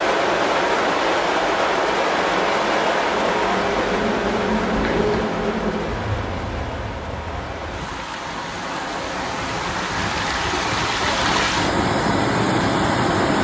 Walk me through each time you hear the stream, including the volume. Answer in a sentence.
The stream can be heard from 0.0 to 13.3 s, getting quieter then louder.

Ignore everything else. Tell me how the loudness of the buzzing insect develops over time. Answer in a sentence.
The volume of the buzzing insect goes up, then down.